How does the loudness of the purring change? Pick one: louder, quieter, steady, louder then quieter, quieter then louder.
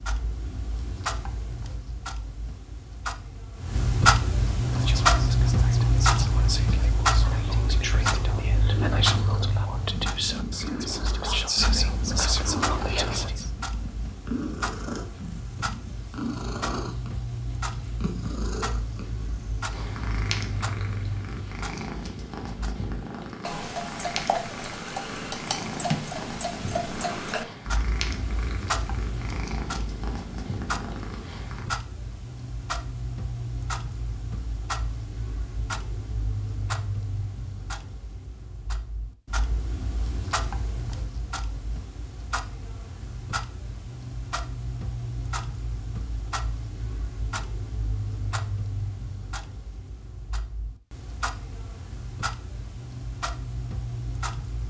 steady.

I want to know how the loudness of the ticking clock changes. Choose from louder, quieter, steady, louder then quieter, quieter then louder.
quieter.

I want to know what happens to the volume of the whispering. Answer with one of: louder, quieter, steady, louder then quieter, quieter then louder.
louder.